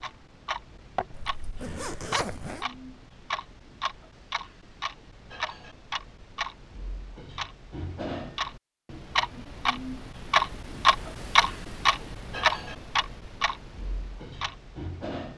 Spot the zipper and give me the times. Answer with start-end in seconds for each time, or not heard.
1.1-2.6.